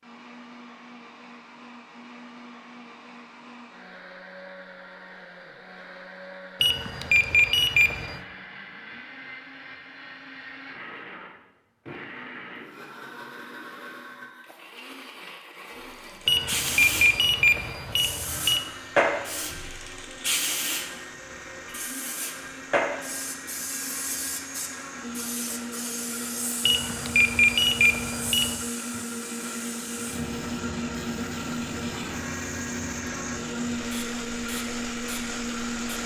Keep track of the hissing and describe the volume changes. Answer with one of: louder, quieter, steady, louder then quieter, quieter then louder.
quieter.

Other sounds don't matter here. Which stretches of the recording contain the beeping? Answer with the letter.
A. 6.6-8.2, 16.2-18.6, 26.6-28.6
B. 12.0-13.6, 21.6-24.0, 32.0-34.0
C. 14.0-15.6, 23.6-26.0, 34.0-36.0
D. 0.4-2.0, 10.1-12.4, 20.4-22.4
A.